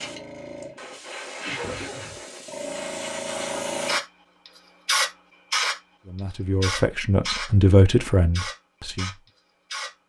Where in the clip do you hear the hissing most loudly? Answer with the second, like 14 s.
5 s.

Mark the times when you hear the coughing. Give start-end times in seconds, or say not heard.
1.4-2.2.